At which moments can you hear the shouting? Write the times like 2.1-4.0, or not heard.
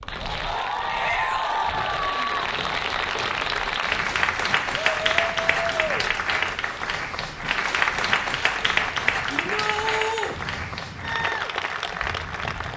0.8-1.7, 5.0-6.1, 9.3-10.3.